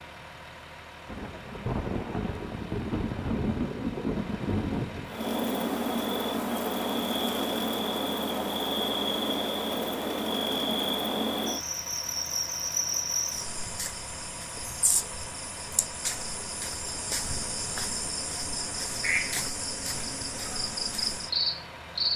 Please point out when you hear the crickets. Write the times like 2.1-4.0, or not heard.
5.0-22.1.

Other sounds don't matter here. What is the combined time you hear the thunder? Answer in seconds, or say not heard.
4 s.